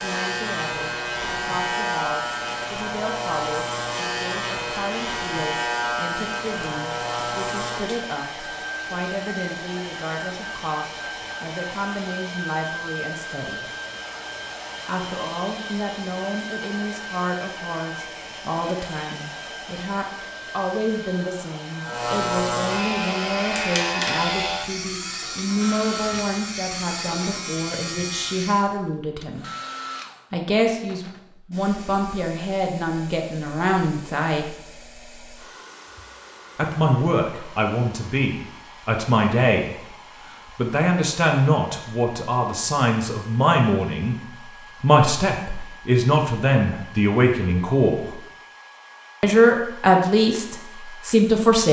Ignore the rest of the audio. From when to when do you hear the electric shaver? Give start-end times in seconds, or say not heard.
0.0-8.0, 21.8-28.6.